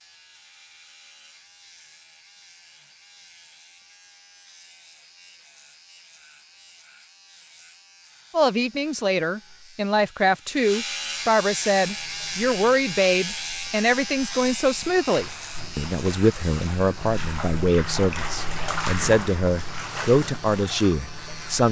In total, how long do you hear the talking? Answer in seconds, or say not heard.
13 s.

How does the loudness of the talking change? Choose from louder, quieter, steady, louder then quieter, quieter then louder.
steady.